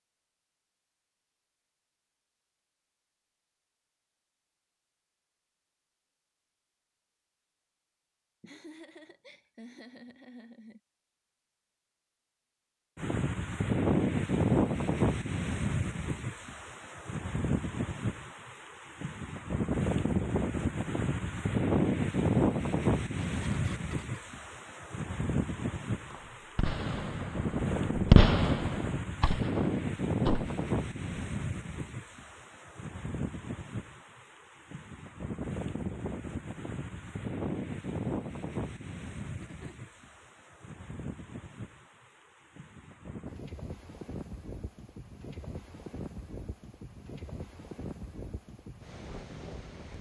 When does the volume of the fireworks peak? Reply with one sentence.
The volume of the fireworks peaks at 28 seconds.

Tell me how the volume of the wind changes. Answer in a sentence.
The volume of the wind goes down.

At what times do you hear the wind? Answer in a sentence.
You can hear the wind from 12.9 to 49.9 s.